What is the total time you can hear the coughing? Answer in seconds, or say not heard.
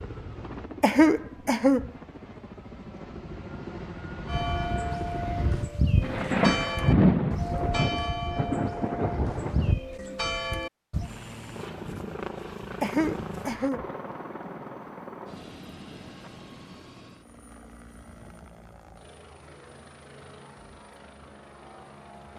2 s.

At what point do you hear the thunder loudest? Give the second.
7 s.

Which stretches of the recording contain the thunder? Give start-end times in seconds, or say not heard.
6.0-9.8.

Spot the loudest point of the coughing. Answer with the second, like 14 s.
1 s.